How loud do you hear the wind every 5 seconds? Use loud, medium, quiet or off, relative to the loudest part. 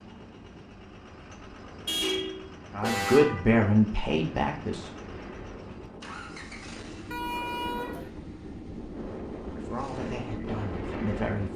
quiet, medium, loud.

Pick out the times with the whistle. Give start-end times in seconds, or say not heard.
not heard.